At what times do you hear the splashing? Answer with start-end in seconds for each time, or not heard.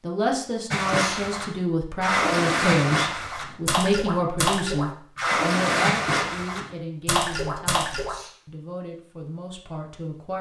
0.7-8.2.